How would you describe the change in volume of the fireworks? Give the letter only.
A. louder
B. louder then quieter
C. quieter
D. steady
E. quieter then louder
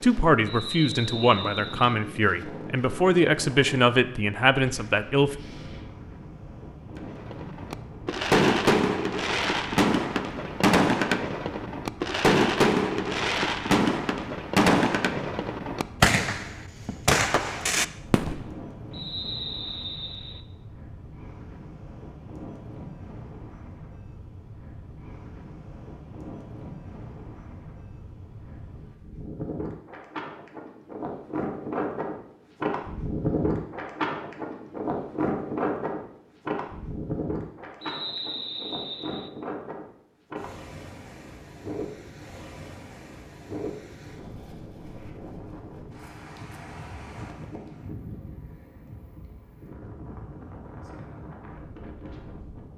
D.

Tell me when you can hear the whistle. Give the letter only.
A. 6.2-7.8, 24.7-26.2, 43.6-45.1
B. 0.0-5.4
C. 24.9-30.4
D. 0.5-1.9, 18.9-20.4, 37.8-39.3
D.